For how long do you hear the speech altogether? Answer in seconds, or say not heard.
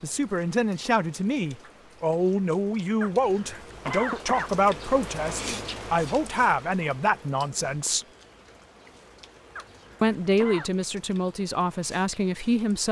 11 s.